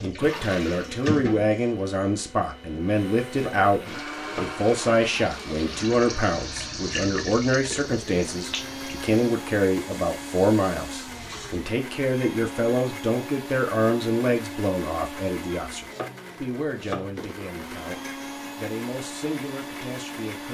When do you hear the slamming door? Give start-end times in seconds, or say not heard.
not heard.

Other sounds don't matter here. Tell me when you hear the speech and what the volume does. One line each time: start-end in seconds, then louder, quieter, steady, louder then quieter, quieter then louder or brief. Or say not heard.
0.0-20.4 quieter.